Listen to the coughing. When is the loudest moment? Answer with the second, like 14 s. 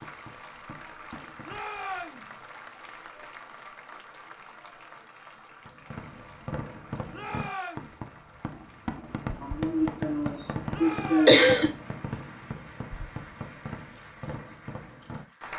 11 s.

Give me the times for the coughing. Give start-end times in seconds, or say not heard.
9.4-11.7.